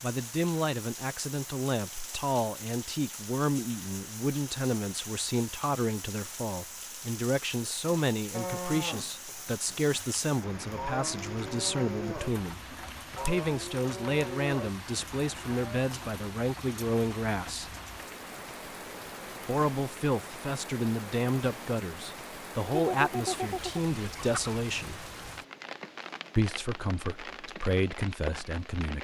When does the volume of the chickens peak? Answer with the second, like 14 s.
23 s.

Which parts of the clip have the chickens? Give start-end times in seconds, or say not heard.
22.7-24.6.